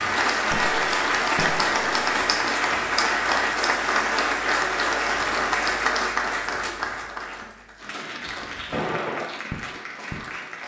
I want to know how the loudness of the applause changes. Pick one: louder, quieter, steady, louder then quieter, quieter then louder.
quieter.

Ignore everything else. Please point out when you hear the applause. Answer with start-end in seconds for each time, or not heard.
0.0-10.6.